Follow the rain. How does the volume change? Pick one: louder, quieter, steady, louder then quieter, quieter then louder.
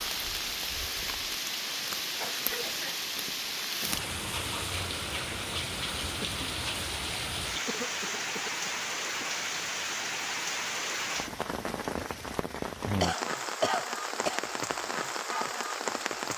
steady.